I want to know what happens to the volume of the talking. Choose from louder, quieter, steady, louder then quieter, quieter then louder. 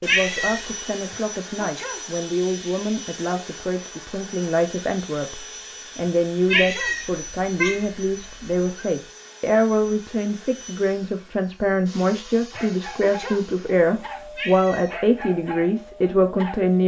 louder.